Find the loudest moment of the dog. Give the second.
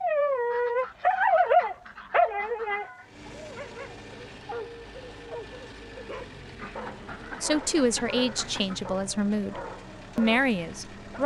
1 s.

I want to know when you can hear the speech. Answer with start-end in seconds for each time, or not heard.
7.4-11.2.